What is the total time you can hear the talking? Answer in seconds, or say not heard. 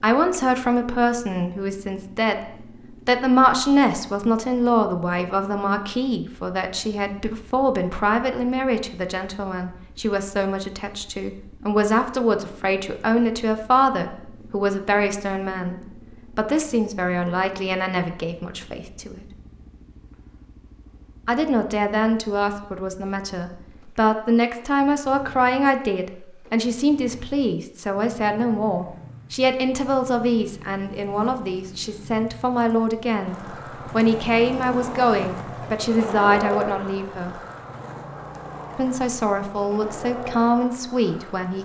38 s.